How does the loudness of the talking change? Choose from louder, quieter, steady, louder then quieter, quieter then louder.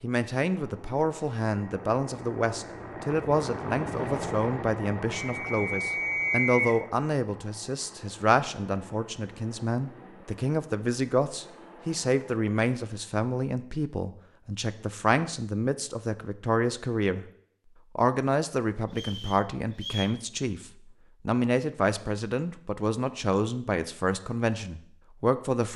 steady.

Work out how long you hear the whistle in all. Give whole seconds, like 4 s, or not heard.
3 s.